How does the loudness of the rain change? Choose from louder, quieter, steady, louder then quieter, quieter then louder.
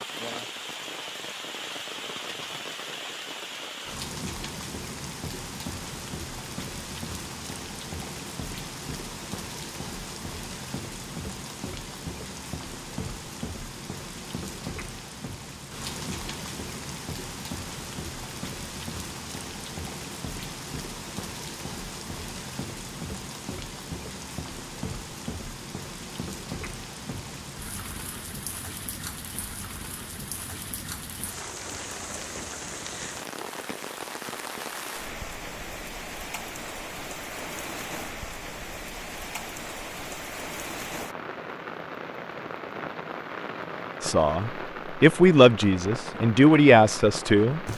steady.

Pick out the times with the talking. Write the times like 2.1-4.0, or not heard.
44.0-47.6.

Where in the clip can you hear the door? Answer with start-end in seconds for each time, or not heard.
not heard.